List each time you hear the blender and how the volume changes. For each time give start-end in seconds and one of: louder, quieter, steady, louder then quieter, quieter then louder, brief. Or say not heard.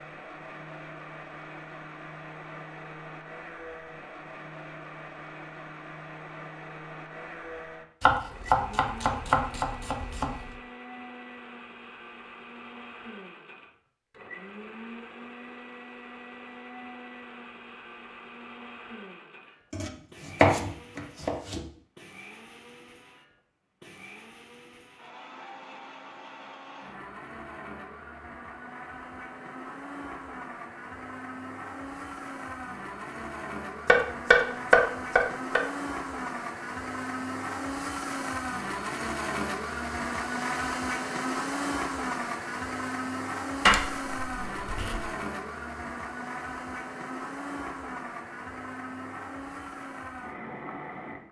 0.0-51.2 louder.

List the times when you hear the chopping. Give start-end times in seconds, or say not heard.
8.0-10.3, 19.7-21.6, 33.9-35.6, 43.6-45.1.